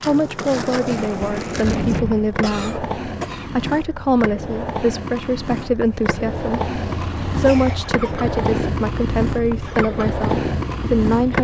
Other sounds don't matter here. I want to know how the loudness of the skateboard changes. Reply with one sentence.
The loudness of the skateboard stays about the same.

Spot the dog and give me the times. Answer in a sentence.
You can't hear the dog here.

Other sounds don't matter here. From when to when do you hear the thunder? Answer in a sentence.
You can hear the thunder from 0.9 to 2.3 s.